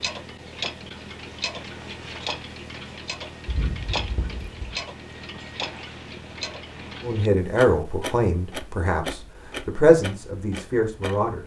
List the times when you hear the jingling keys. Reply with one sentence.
You can hear the jingling keys from 3.5 to 4.8 s.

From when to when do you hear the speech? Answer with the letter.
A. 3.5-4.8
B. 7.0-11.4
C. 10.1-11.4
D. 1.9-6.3
B.